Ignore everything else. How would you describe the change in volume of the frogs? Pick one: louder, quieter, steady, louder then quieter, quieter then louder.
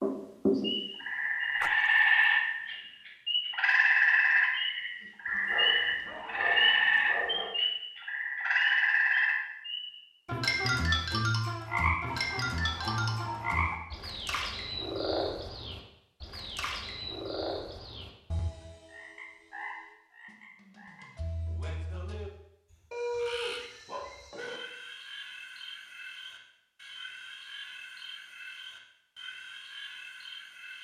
quieter.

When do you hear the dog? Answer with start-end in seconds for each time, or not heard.
5.2-7.5, 12.1-13.8, 22.9-24.6.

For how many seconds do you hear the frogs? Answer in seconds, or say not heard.
31 s.